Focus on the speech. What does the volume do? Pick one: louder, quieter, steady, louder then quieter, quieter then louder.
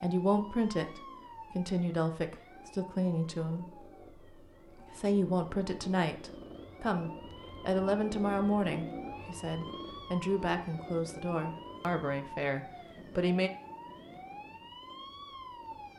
steady.